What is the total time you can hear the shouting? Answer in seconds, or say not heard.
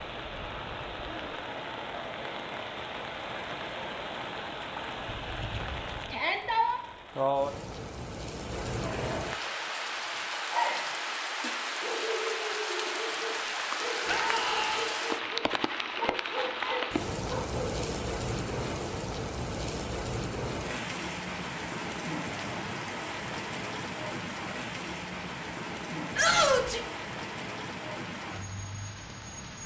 2 s.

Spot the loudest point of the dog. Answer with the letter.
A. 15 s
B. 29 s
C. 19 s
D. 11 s
D.